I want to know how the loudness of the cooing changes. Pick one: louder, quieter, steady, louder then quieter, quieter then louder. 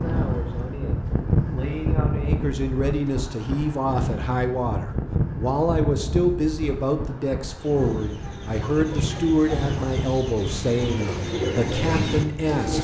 louder.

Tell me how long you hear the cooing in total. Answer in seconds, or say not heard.
5 s.